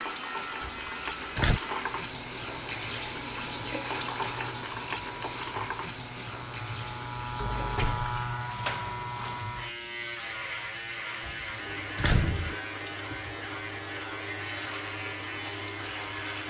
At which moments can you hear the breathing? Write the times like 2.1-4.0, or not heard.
not heard.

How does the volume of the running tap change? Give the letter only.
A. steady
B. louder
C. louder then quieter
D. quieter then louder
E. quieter
E.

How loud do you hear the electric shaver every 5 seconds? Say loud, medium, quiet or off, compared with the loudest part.
medium, loud, loud, loud.